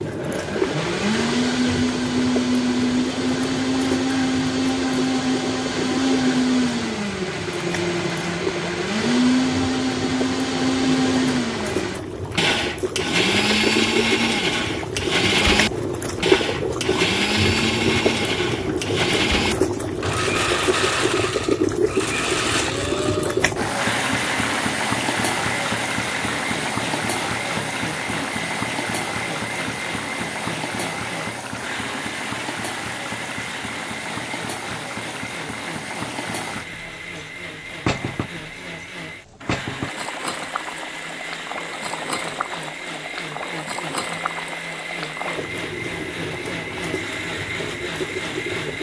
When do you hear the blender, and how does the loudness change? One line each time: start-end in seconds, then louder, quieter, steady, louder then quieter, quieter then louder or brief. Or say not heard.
0.0-48.7 quieter.